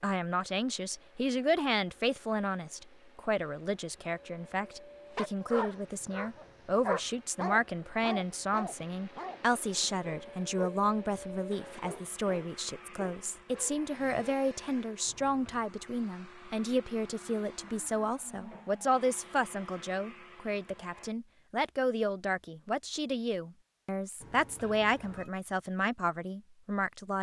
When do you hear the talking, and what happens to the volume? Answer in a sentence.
You can hear the talking from 0.0 to 27.1 s, at a steady volume.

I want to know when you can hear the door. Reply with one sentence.
The door can't be heard in this clip.